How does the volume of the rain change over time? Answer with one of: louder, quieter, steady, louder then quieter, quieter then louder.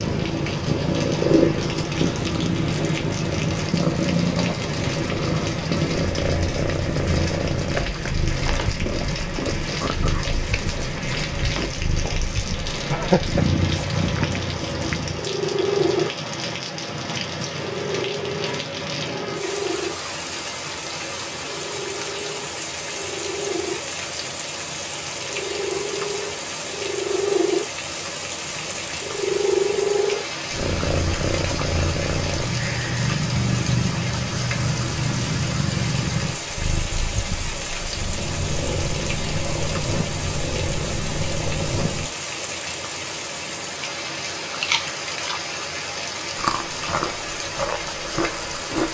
steady.